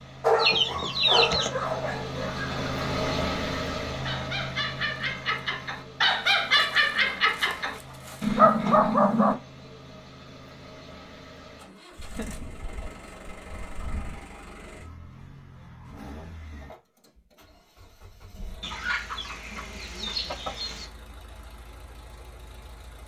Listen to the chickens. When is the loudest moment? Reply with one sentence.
The volume of the chickens peaks at 1 second.